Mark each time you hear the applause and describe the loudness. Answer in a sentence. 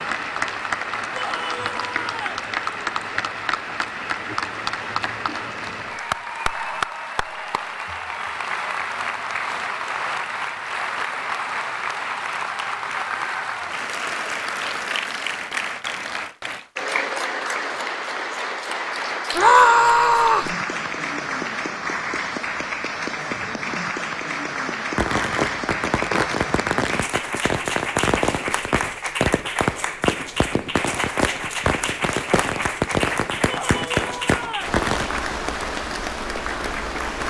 You can hear the applause from 0.0 to 37.2 s, at a steady volume.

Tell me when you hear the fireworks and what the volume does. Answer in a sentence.
You can hear the fireworks from 24.9 to 35.1 s, at a steady volume.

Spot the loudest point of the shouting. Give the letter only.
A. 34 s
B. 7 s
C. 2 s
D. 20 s
D.